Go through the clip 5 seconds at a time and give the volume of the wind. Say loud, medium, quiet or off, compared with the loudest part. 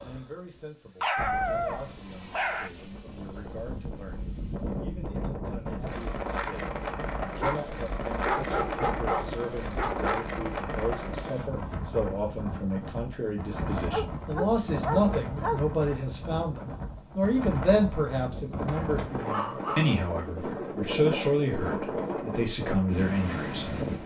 medium, loud, loud, loud, loud.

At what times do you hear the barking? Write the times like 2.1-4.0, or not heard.
1.0-2.7, 7.4-10.2, 13.8-15.6, 18.7-19.9.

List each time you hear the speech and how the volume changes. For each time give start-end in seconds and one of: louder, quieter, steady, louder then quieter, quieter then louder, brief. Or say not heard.
0.0-24.0 louder.